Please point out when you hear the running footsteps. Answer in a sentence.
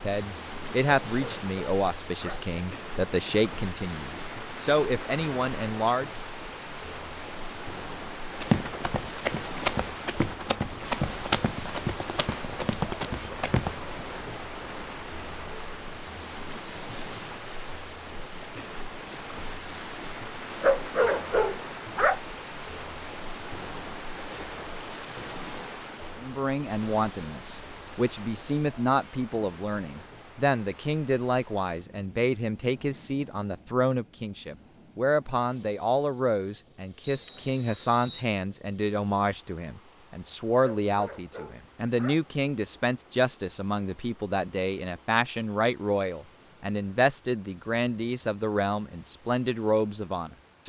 You can hear the running footsteps from 8.3 to 13.8 s.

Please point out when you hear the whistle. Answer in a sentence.
The whistle can be heard from 37.0 to 38.2 s.